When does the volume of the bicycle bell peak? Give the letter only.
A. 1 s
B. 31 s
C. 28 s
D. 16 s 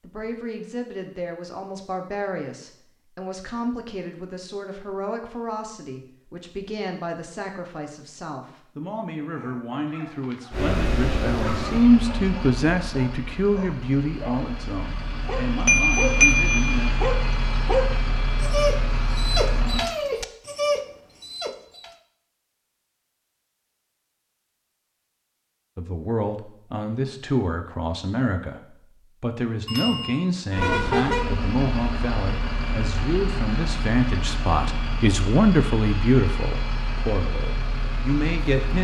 D.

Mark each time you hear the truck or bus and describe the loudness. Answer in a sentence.
The truck or bus can be heard from 10.5 to 19.9 s, getting quieter then louder; and from 30.5 to 38.7 s, getting quieter.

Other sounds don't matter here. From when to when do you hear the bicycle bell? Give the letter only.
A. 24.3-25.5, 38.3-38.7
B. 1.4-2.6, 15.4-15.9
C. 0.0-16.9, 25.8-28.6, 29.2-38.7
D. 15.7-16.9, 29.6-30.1
D.